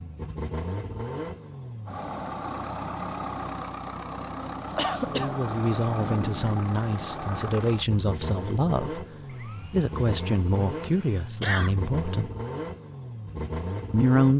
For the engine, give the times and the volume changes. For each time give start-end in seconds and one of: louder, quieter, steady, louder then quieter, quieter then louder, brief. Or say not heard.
0.0-14.3 steady.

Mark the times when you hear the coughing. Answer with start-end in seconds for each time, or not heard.
4.8-5.4, 10.8-11.8.